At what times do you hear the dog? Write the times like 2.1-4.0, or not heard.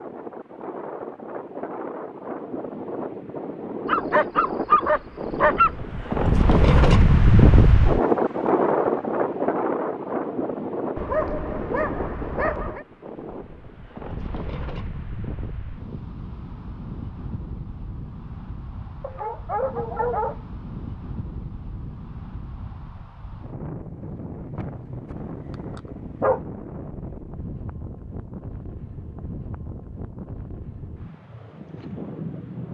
3.9-5.7, 10.9-12.8, 19.0-20.4, 24.6-26.4.